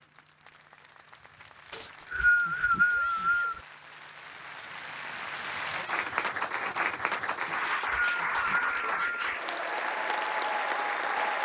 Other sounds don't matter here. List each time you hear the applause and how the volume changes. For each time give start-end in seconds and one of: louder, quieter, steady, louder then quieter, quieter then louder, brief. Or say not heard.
0.0-11.3 louder.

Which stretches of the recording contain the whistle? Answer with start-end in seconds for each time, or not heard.
1.7-3.6, 7.5-9.2.